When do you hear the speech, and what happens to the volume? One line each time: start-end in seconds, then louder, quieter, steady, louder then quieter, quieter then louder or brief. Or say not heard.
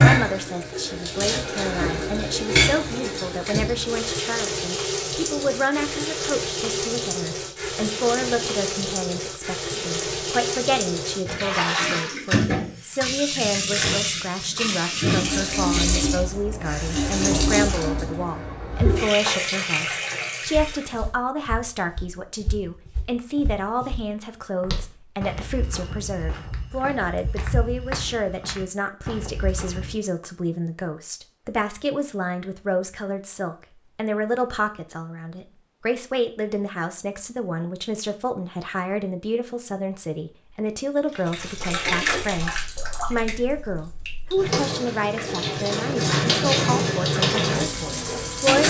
0.0-48.6 steady.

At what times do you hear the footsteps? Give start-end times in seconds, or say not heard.
20.4-29.9.